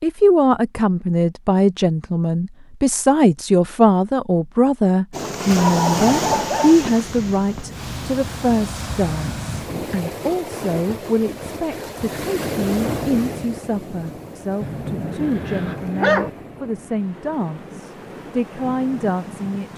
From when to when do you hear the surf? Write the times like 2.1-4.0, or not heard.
5.1-19.7.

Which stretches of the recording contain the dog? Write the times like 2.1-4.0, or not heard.
5.5-7.7, 14.6-16.3.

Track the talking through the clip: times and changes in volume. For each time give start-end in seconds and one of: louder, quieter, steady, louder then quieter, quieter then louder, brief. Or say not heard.
0.0-19.7 quieter.